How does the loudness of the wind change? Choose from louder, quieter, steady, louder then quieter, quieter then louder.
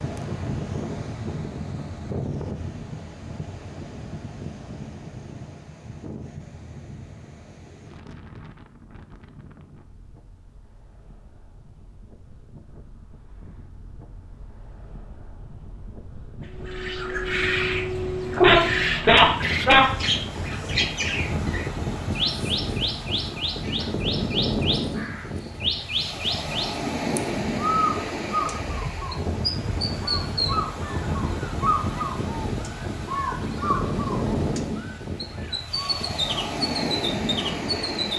quieter then louder.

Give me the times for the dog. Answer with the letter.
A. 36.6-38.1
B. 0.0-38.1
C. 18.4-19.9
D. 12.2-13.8
C.